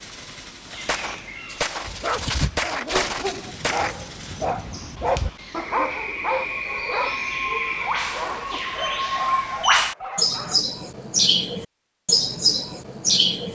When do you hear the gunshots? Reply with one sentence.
The gunshots can be heard from 0.5 to 1.9 s and from 2.5 to 4.0 s.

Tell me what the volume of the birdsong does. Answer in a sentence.
The volume of the birdsong goes up.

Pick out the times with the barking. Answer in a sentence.
You can hear the barking from 1.9 to 10.7 s.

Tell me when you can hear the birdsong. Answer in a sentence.
The birdsong can be heard from 0.0 to 13.4 s.